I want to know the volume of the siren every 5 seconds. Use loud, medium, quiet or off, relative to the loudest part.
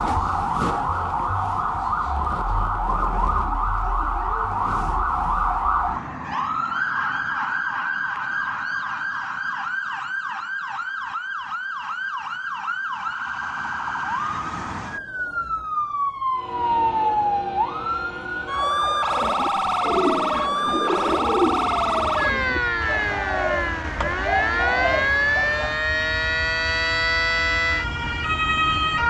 loud, loud, medium, loud, loud, loud.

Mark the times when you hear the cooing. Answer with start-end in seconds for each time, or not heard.
19.1-25.9.